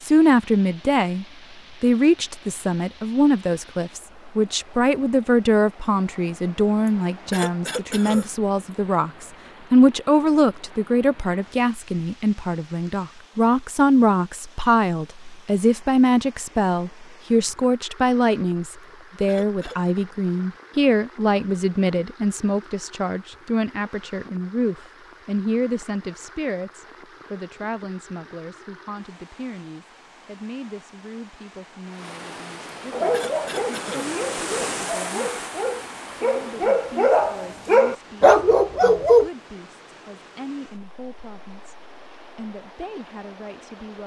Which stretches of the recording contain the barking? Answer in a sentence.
The barking can be heard from 32.9 to 39.3 s.